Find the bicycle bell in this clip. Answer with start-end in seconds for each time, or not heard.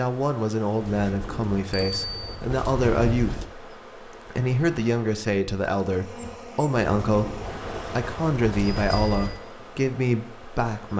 1.7-2.4, 7.1-9.4.